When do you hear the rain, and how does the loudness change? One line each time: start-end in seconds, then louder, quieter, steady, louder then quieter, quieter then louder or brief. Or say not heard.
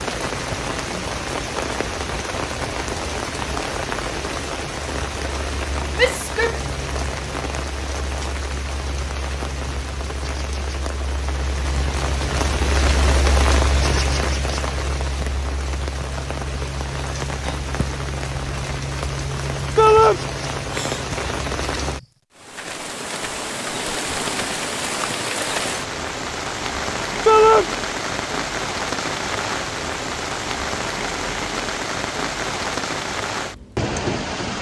0.0-34.5 steady.